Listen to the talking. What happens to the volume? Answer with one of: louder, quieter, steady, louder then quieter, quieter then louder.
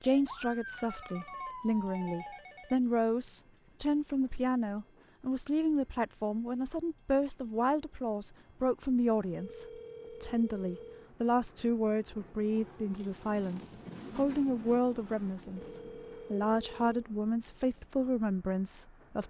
steady.